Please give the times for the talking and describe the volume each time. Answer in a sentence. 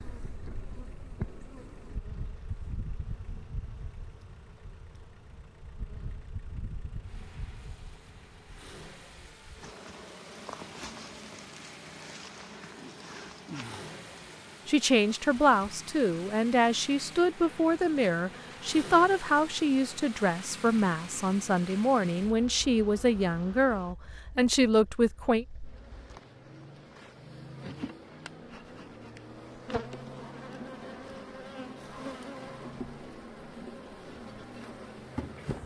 You can hear the talking from 14.7 to 25.4 s, at a steady volume.